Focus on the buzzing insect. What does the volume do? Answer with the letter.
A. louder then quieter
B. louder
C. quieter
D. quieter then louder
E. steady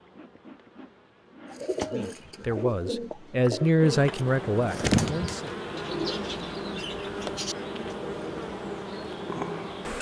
B.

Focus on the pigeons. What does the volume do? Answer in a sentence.
The loudness of the pigeons goes up, then down.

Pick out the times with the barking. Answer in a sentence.
You can't hear the barking here.